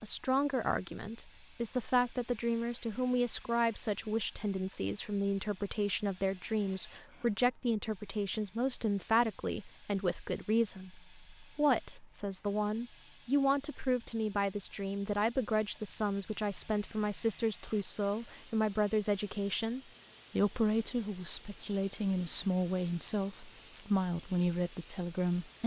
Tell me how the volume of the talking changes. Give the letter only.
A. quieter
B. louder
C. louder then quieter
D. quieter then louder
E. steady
E.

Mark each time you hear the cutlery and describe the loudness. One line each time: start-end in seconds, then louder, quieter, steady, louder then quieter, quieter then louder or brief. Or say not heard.
not heard.